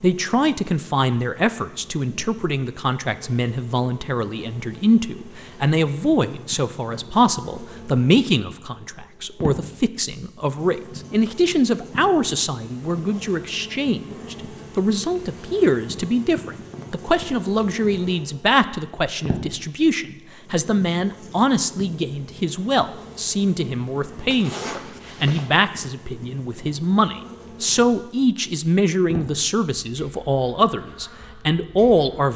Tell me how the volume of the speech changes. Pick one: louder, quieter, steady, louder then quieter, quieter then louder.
steady.